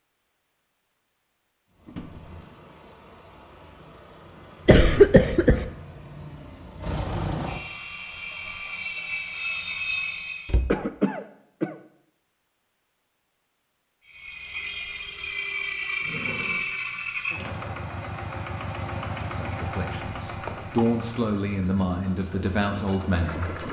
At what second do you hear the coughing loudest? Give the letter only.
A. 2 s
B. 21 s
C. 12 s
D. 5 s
D.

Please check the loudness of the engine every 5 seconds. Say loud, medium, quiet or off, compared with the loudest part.
quiet, loud, loud, loud, medium.